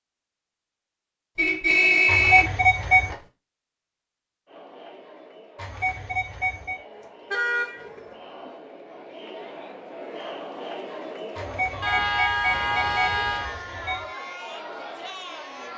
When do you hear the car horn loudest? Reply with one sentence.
The loudest moment of the car horn is at 2 seconds.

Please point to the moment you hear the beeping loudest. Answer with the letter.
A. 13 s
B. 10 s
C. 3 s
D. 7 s
C.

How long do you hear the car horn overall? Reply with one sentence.
The car horn can be heard for 5 seconds in total.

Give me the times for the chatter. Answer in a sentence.
The chatter can be heard from 4.5 to 15.7 s.